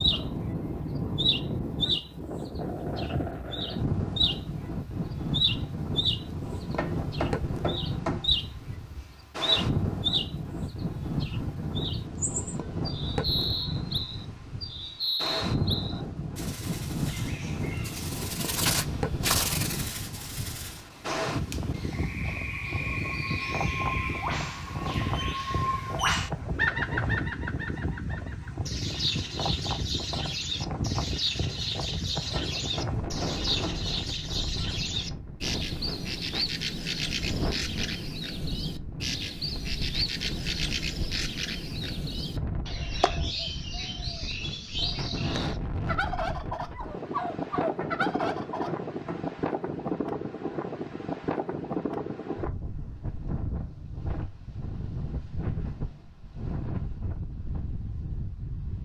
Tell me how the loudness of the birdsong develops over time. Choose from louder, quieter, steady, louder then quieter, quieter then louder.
steady.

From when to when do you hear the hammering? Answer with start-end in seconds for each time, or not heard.
6.8-8.3, 32.4-33.9, 47.8-49.4.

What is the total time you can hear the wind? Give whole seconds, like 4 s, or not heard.
59 s.